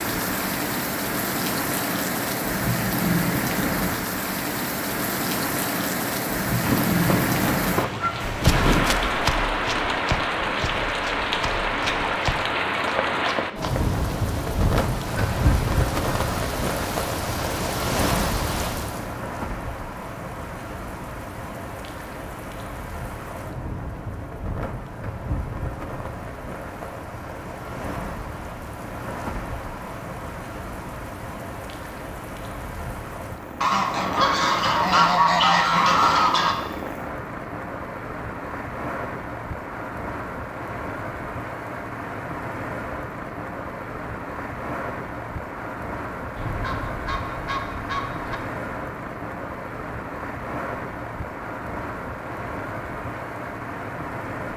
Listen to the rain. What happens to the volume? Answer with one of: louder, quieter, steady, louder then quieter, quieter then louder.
quieter.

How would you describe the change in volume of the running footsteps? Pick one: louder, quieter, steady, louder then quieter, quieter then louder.
quieter then louder.